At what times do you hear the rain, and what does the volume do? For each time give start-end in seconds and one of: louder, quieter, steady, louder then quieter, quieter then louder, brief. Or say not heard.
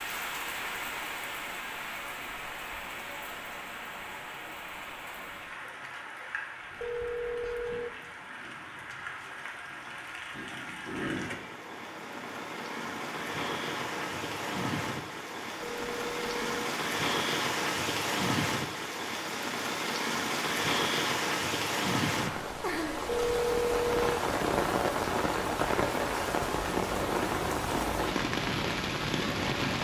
0.0-29.8 louder.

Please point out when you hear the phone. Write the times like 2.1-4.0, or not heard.
6.8-7.9, 15.6-16.5, 23.1-24.2.